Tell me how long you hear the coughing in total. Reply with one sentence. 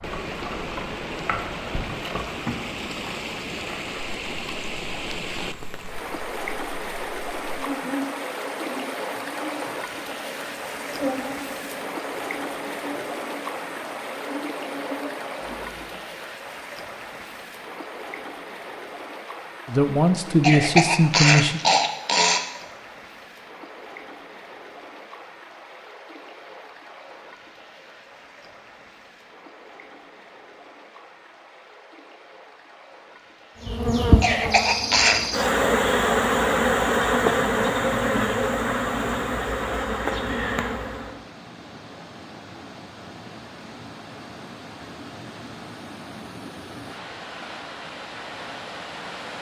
The coughing can be heard for 3 seconds in total.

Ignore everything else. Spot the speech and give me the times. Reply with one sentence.
You can hear the speech from 19.6 to 21.6 s.